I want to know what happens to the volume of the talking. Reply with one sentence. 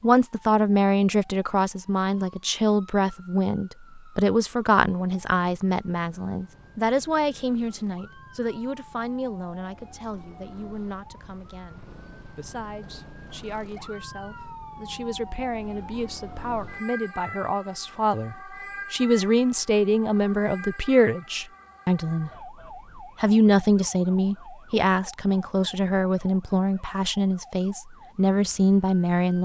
The loudness of the talking goes down, then up.